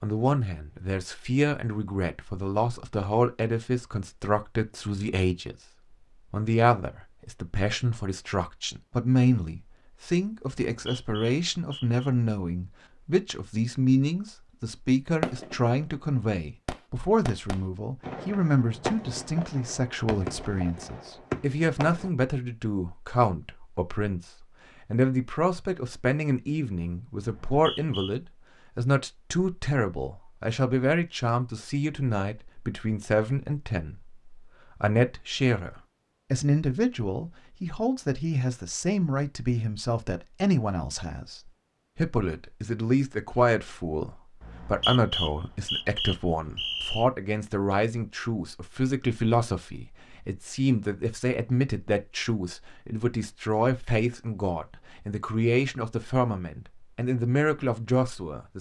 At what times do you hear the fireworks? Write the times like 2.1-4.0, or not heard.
15.2-15.7, 16.6-22.1.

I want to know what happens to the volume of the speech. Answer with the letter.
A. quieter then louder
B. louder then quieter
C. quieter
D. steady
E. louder
D.